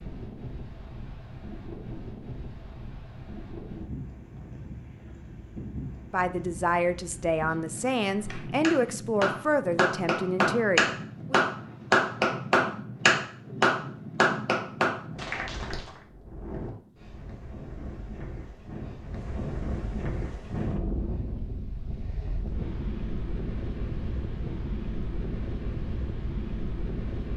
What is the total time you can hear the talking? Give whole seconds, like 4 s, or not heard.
5 s.